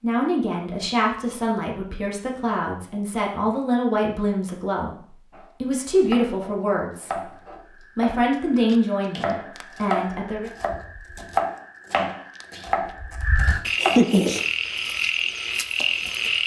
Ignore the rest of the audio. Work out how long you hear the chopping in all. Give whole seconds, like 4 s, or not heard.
9 s.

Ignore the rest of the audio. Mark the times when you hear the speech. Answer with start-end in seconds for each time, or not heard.
0.0-10.5.